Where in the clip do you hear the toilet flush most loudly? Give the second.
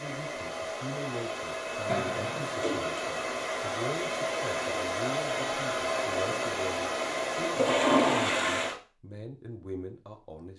8 s.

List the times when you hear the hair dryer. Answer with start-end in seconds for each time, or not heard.
0.0-8.8.